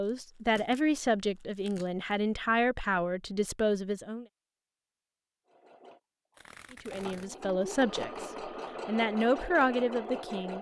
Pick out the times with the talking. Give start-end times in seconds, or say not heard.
0.0-4.2, 6.7-10.5.